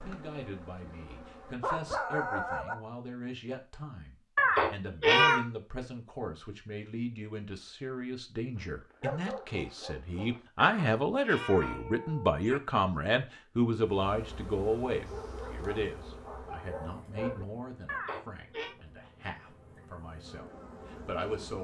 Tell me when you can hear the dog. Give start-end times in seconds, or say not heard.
0.8-2.8, 8.6-10.4, 15.1-17.4.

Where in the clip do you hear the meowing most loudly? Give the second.
5 s.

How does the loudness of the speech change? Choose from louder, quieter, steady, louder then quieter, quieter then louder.
louder then quieter.